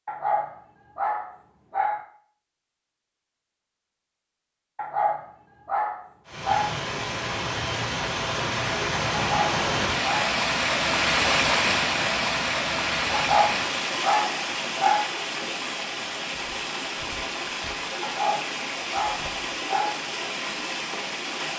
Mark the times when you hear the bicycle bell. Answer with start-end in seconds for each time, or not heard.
not heard.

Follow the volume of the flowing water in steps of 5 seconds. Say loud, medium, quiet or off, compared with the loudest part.
off, loud, loud, medium, medium.